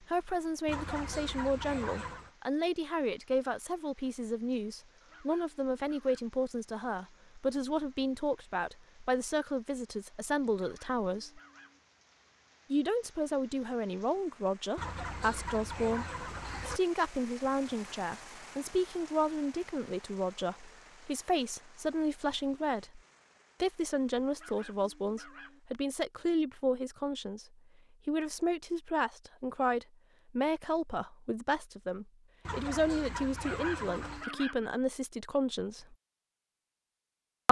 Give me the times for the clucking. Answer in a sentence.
The clucking can be heard from 0.7 to 2.3 s, from 14.8 to 16.8 s and from 32.5 to 34.2 s.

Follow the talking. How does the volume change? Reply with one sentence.
The volume of the talking stays about the same.